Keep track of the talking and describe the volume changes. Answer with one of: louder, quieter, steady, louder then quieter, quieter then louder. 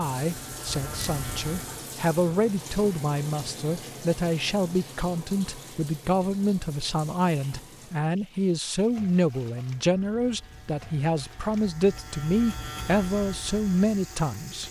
steady.